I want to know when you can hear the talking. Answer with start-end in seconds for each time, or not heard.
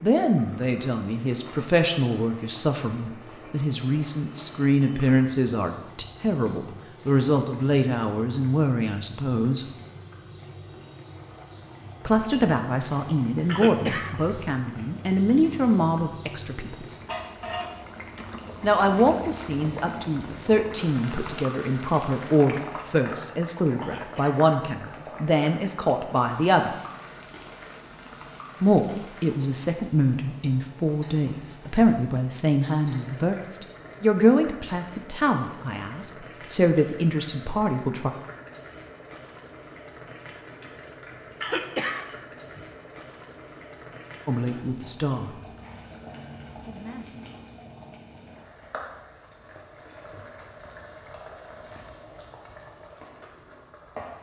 0.0-9.7, 12.1-16.9, 18.6-26.8, 28.6-38.1, 44.2-45.4, 46.6-47.4.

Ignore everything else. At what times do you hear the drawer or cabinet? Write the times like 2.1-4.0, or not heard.
not heard.